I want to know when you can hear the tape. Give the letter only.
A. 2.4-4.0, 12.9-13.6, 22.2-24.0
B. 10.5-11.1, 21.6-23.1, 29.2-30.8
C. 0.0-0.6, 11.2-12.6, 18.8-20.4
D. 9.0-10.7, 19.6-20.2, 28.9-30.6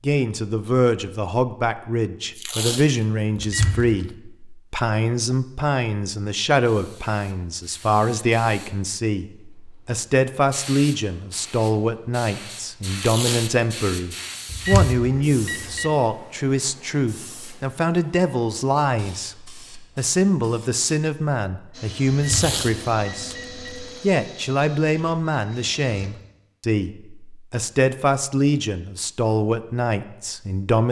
A.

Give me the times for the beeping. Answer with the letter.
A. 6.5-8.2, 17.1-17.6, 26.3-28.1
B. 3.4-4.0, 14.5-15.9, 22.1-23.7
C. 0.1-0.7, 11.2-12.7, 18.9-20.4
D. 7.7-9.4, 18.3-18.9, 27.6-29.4
B.